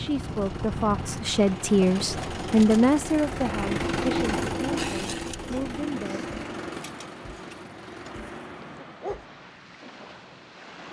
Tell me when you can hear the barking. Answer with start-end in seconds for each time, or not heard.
8.6-9.2.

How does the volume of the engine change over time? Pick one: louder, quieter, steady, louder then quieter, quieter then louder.
louder then quieter.